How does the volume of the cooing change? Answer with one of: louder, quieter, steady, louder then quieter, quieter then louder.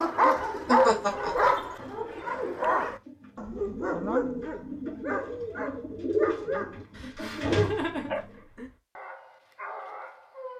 louder.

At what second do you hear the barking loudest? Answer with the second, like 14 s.
1 s.